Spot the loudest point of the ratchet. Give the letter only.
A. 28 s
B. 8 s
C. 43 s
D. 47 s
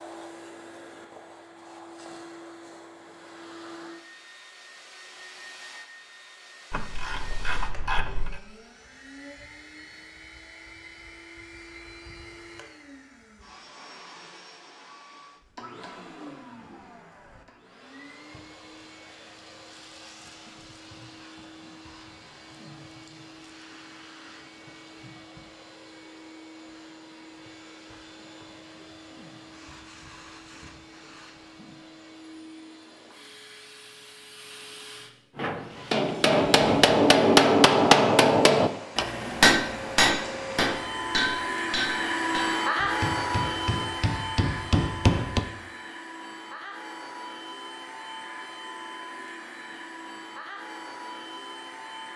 B.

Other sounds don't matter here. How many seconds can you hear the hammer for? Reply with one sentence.
The hammer can be heard for 10 seconds in total.